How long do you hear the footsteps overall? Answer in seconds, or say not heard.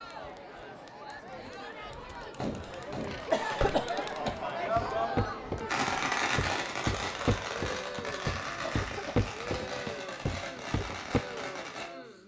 8 s.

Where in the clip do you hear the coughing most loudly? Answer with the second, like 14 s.
3 s.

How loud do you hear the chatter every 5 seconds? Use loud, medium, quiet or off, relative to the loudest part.
loud, loud, medium.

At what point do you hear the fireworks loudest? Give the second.
6 s.